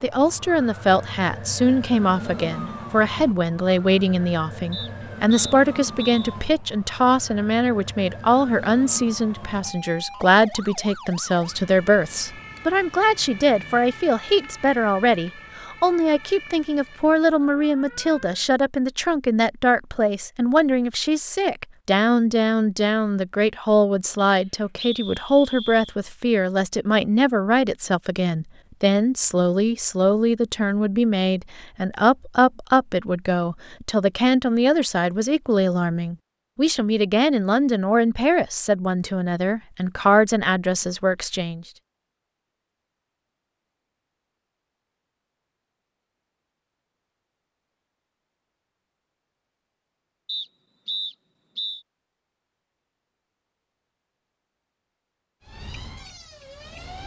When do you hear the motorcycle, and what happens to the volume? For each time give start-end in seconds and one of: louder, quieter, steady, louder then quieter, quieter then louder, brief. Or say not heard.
not heard.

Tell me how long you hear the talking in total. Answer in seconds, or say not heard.
42 s.